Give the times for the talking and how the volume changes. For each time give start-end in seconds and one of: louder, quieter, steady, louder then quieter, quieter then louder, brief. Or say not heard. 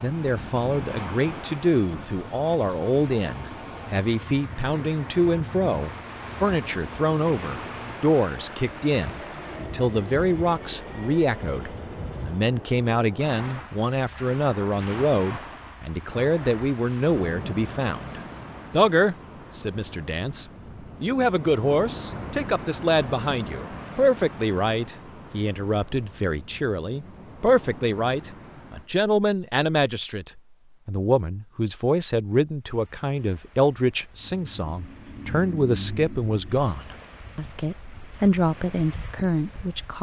0.0-39.9 steady.